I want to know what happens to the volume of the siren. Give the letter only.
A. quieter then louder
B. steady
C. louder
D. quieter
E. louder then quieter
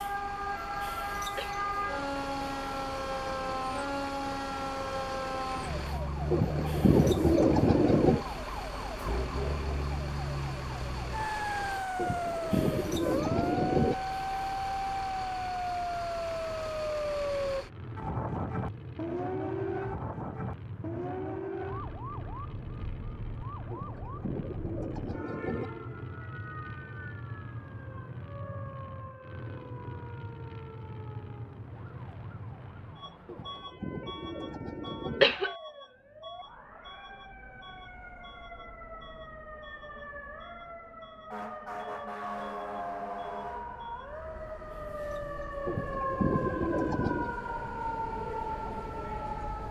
A.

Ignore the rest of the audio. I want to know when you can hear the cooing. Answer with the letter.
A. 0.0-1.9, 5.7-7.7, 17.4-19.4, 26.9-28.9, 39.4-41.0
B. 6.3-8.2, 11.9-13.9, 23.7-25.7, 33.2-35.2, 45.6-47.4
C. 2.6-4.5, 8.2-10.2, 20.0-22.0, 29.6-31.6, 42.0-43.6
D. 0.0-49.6
B.